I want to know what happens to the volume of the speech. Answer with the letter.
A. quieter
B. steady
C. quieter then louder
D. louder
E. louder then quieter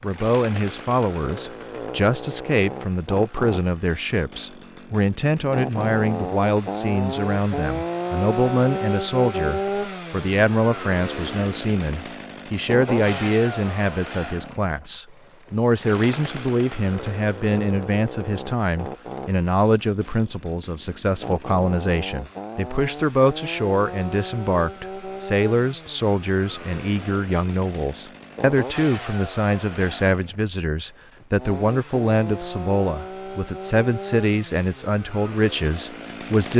B.